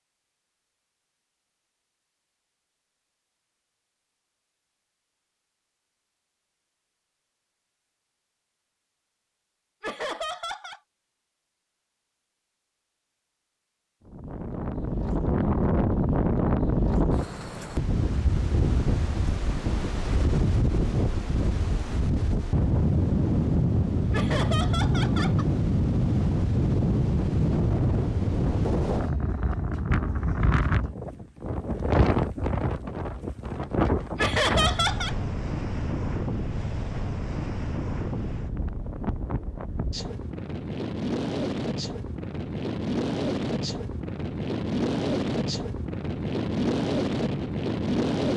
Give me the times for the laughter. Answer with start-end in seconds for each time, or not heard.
9.8-10.8, 24.1-25.4, 34.1-35.1.